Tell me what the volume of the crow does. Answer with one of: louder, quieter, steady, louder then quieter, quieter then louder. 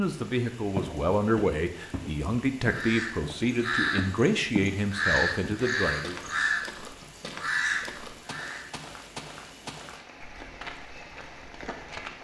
steady.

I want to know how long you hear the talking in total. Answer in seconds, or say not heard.
6 s.